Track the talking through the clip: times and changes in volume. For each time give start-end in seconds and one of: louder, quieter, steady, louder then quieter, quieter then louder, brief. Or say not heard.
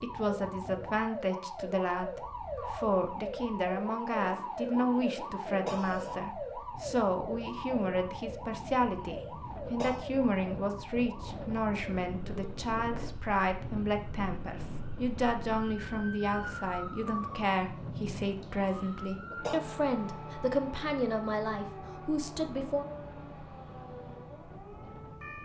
0.0-22.9 steady.